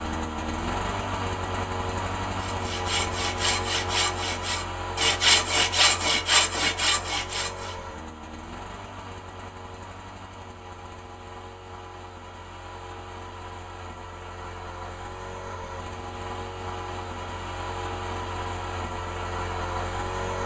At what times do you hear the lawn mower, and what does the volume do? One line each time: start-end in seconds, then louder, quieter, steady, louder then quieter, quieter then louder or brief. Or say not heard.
0.0-20.4 quieter then louder.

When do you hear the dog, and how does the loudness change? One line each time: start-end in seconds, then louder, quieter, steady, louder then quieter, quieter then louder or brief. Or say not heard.
not heard.